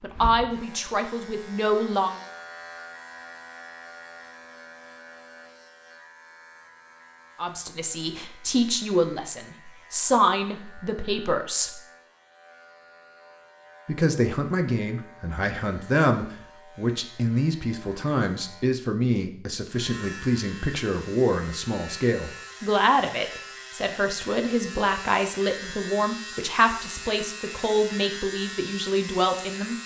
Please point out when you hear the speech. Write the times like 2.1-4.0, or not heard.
0.0-2.1, 7.3-11.7, 13.8-29.8.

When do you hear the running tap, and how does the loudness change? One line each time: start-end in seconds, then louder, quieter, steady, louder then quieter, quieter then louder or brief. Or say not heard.
not heard.